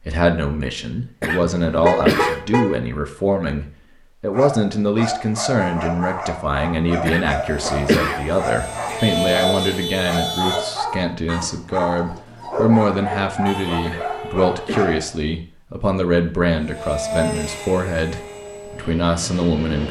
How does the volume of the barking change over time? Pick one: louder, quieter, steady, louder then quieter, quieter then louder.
steady.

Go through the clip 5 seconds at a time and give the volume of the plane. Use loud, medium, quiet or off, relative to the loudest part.
off, loud, off, loud.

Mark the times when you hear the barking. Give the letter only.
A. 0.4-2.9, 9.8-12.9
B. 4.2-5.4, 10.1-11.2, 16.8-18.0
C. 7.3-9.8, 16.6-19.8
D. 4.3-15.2
D.